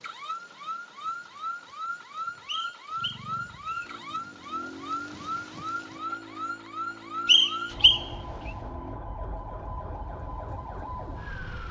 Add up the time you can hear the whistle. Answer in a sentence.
The whistle can be heard for 2 seconds in total.